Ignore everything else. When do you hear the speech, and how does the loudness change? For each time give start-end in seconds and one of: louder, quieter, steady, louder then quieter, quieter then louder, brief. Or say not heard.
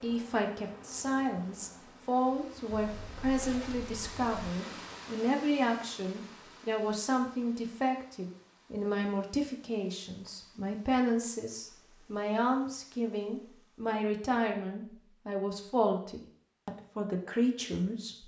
0.0-18.2 steady.